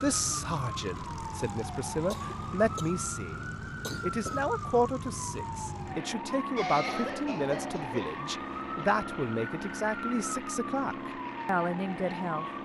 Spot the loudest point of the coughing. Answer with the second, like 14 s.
7 s.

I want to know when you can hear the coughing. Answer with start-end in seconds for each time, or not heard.
2.1-3.0, 3.8-4.5, 6.5-8.2.